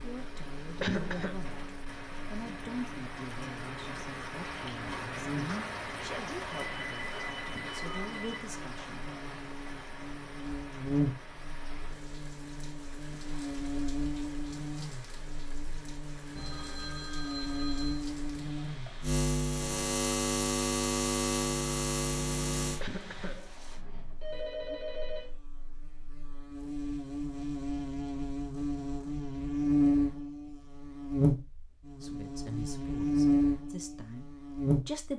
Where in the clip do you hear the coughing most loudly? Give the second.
1 s.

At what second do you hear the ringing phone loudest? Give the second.
25 s.